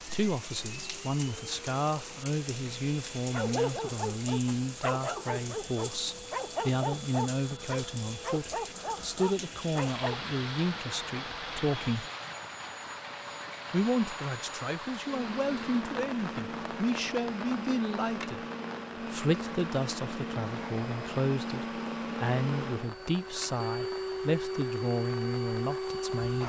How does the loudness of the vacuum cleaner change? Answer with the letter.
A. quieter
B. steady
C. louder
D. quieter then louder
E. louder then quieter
C.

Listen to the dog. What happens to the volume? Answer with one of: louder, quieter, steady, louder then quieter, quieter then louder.
steady.